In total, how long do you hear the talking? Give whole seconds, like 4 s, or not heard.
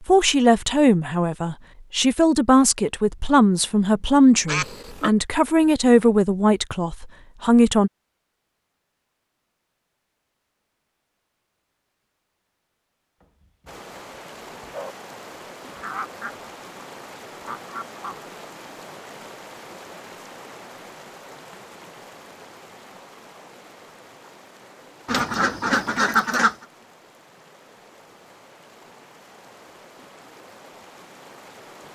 8 s.